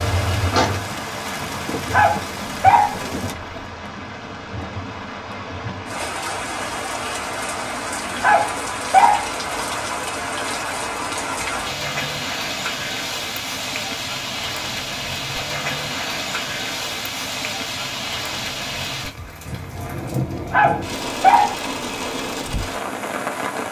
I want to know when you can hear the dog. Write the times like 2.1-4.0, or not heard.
1.9-3.0, 8.2-9.2, 20.5-21.6.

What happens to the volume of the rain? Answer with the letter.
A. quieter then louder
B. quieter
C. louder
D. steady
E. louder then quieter
D.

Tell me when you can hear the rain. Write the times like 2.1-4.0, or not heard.
0.0-23.6.